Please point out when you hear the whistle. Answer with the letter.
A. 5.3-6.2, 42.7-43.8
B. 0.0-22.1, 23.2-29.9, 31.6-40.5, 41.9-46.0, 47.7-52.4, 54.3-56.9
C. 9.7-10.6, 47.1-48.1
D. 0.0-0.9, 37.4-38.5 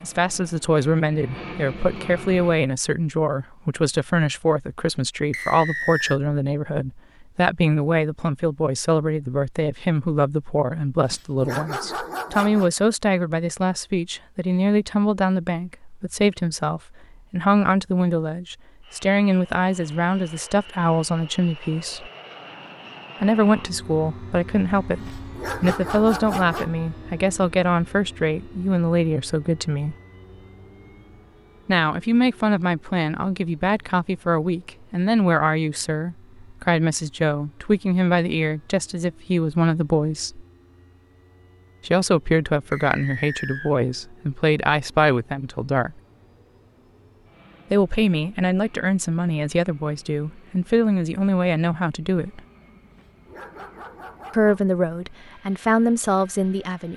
A.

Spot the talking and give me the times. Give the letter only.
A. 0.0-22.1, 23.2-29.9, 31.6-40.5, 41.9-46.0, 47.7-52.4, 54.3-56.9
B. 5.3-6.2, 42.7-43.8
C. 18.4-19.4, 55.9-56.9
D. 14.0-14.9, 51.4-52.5
A.